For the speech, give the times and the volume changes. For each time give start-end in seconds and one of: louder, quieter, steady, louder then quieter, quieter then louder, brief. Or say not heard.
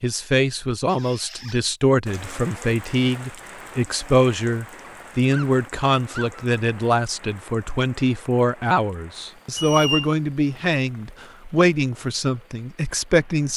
0.0-13.5 steady.